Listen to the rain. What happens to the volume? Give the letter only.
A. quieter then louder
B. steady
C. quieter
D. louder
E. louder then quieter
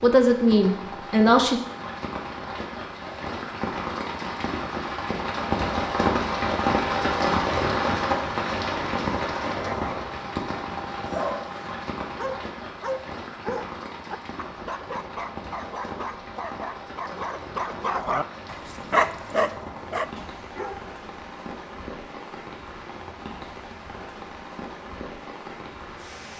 E.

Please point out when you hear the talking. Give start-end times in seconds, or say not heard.
0.0-1.6.